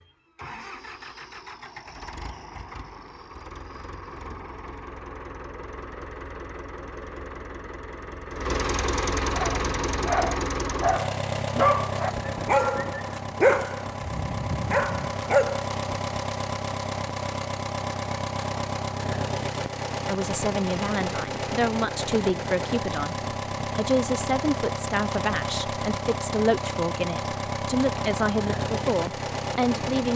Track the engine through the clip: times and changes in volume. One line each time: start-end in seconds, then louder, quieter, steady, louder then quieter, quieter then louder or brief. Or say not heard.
0.0-30.1 louder.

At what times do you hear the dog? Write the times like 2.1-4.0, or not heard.
9.3-15.7.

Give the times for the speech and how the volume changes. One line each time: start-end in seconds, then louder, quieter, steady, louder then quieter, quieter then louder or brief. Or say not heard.
20.1-30.1 steady.